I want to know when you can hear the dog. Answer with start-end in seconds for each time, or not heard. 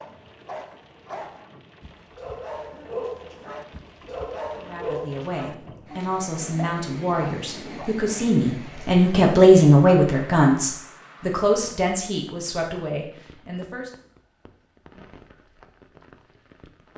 0.0-7.9.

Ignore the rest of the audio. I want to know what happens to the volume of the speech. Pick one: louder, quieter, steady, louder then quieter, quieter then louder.
louder then quieter.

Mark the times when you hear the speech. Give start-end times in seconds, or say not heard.
4.6-13.9.